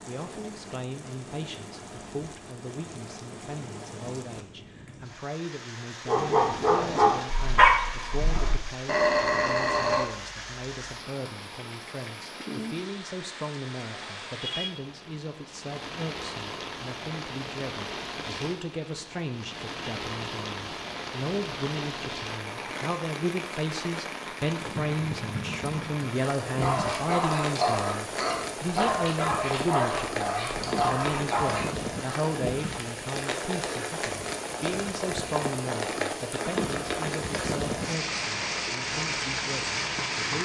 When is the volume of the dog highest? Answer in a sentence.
The volume of the dog peaks at 8 seconds.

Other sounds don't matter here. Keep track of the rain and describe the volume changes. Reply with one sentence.
The volume of the rain goes up.